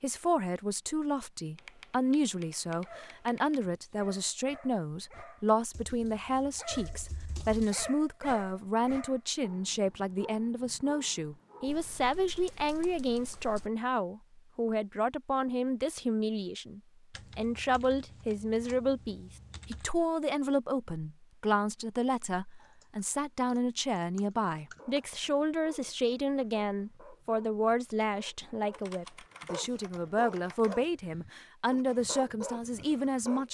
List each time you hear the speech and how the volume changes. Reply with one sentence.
You can hear the speech from 0.0 to 33.4 s, at a steady volume.